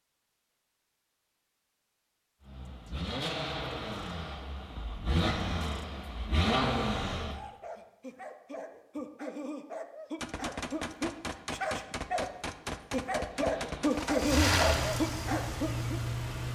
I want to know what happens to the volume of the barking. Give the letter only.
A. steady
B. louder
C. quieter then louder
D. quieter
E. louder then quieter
B.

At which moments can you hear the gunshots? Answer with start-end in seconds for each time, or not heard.
10.2-14.4.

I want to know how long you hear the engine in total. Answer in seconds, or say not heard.
8 s.